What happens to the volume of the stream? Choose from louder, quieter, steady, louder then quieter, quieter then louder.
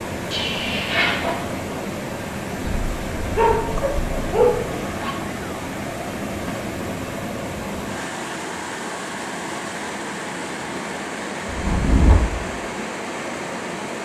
steady.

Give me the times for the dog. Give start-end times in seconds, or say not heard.
2.6-4.6.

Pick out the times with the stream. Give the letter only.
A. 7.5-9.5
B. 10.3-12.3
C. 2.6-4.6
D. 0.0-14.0
D.